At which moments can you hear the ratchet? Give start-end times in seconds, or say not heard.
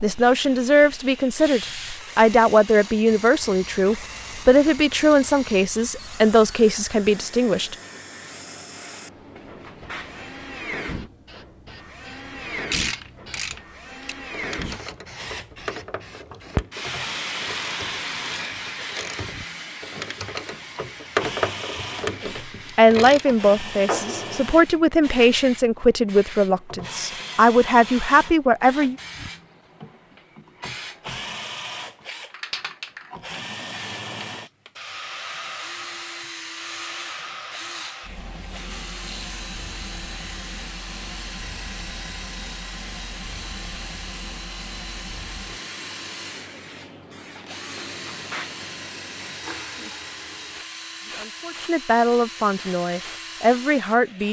12.7-23.4.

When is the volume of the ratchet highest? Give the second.
21 s.